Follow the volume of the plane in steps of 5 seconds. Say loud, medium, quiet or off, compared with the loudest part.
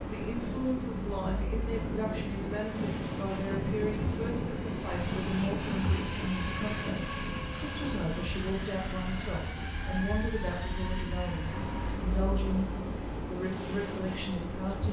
loud, loud, medium.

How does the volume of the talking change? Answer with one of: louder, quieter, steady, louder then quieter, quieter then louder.
steady.